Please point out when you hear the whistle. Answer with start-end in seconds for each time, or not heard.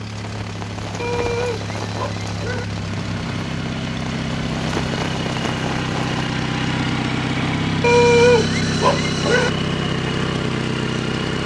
not heard.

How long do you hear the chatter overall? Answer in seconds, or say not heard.
not heard.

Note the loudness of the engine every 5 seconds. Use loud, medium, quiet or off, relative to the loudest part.
medium, loud, loud.